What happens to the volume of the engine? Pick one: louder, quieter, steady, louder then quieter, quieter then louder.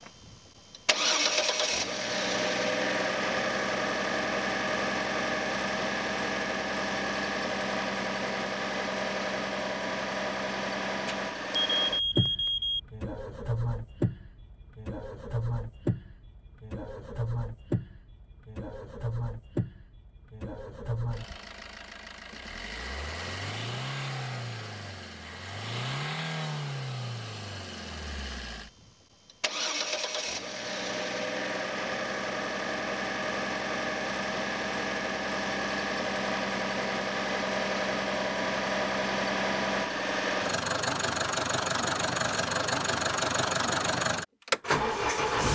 quieter then louder.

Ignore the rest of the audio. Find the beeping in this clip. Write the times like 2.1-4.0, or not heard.
11.1-12.8.